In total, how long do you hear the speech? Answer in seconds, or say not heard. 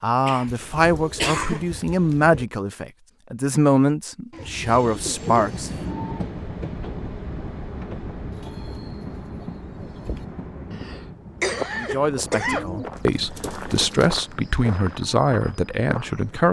10 s.